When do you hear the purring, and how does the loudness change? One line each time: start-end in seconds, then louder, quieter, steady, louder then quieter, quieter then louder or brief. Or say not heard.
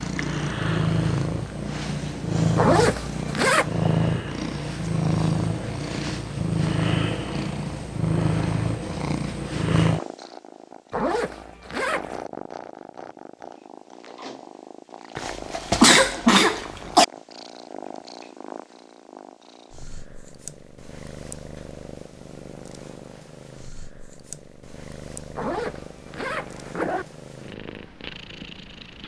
0.0-29.0 quieter.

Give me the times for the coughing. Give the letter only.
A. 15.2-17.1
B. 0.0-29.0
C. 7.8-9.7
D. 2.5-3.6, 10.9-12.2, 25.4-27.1
A.